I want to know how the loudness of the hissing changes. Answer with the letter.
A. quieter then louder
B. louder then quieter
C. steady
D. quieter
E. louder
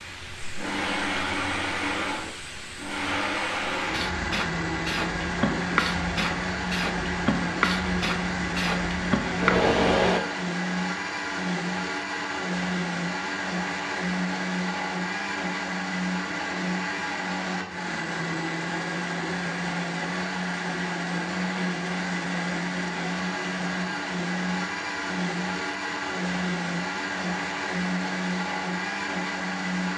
E.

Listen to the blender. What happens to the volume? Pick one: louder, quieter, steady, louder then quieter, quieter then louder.
steady.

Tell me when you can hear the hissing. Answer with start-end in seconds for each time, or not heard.
0.0-10.2.